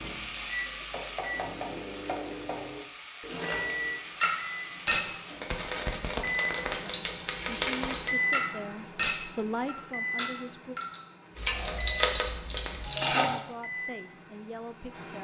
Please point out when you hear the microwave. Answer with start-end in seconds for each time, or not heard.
0.0-15.1.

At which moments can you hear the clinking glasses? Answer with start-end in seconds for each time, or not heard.
4.2-5.0, 8.3-11.0.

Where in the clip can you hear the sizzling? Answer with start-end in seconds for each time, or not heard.
0.0-8.2, 11.3-13.4.